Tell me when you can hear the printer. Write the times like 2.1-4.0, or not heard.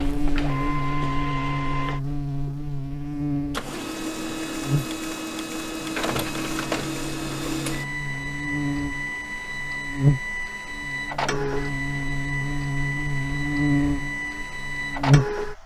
0.0-15.6.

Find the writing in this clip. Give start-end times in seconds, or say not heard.
not heard.